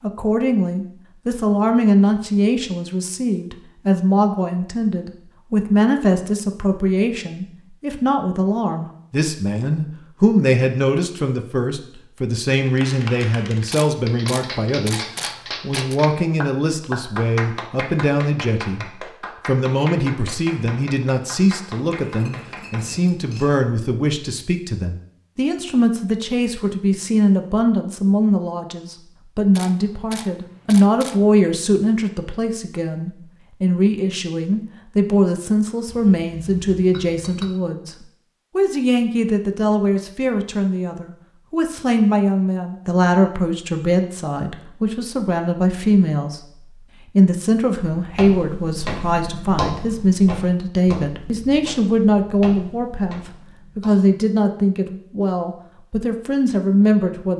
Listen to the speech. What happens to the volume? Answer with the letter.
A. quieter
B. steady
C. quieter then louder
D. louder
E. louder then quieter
B.